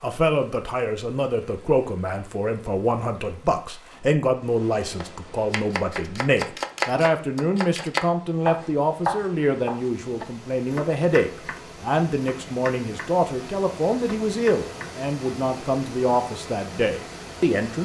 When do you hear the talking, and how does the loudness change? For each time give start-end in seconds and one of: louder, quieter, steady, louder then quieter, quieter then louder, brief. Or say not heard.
0.0-17.8 steady.